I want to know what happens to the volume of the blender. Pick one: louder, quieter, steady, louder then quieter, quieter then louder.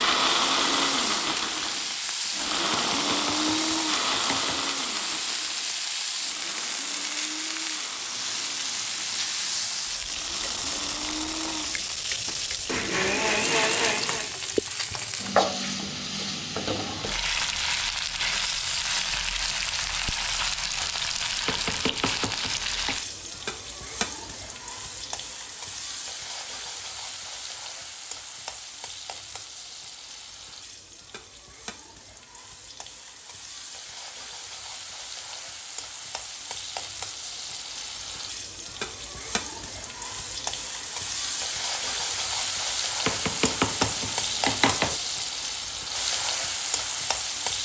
quieter then louder.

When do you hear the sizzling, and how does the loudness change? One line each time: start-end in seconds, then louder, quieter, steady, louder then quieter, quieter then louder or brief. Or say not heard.
0.0-47.6 quieter then louder.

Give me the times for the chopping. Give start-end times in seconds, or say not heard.
2.7-4.7, 21.4-23.0, 43.0-45.0.